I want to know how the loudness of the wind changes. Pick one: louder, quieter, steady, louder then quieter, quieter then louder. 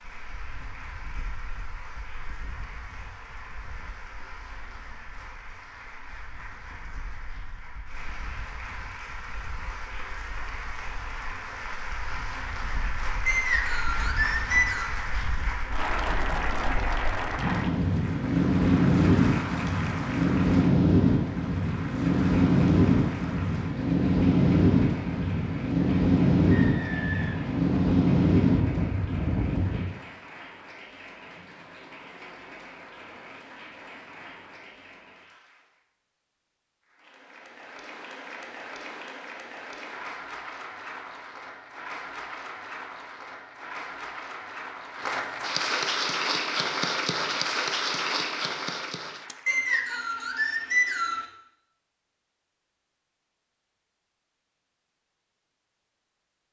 louder.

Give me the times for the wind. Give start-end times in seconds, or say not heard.
0.1-29.9.